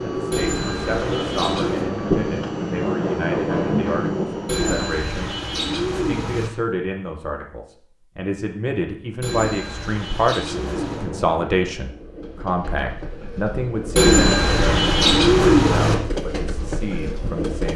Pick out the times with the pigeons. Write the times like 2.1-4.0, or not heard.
0.3-1.9, 4.5-6.5, 9.2-11.1, 13.9-15.9.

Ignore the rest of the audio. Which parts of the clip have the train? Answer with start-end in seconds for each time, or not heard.
0.0-4.7, 10.4-17.7.